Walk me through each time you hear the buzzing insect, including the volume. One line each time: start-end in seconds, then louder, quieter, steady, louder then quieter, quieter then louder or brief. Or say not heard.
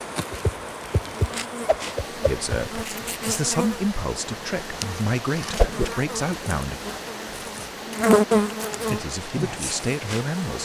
0.0-10.5 louder.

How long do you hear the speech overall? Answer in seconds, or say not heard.
6 s.